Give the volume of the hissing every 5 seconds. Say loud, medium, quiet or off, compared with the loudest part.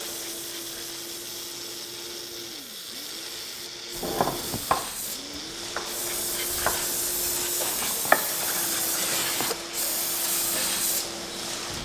medium, loud, loud.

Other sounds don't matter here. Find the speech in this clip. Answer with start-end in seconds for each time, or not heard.
not heard.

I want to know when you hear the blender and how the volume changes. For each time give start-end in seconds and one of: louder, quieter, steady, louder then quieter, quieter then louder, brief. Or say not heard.
0.0-11.8 steady.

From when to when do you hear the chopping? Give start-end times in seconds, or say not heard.
4.0-9.6.